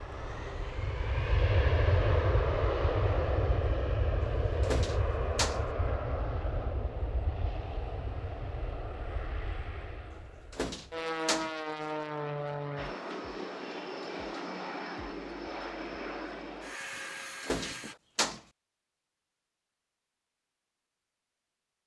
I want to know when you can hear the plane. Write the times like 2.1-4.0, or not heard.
0.0-17.9.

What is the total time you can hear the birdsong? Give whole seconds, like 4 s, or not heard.
not heard.